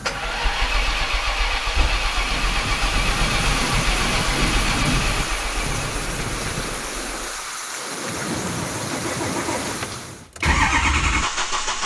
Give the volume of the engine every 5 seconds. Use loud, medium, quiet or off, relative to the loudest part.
loud, medium, loud.